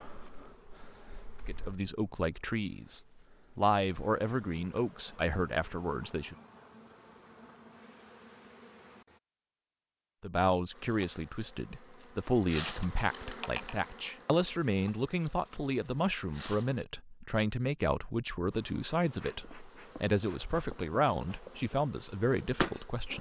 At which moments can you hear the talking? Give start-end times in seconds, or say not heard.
1.4-6.3, 10.2-23.1.